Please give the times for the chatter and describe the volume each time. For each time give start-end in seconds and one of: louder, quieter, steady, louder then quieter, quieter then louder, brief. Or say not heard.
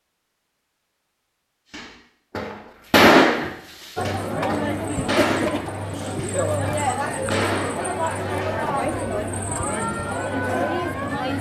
4.0-11.3 steady.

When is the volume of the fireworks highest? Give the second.
3 s.